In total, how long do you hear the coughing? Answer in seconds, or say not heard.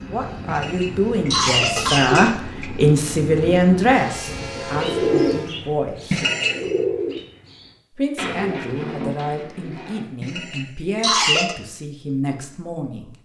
4 s.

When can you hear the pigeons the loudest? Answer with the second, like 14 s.
5 s.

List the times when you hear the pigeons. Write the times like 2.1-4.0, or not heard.
4.2-10.1.